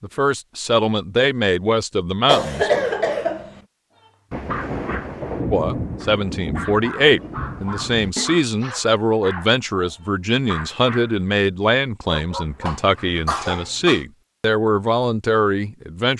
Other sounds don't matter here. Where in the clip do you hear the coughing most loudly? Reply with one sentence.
The volume of the coughing peaks at 3 seconds.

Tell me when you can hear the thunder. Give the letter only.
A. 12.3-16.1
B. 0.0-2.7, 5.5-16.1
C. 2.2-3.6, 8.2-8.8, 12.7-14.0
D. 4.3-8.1
D.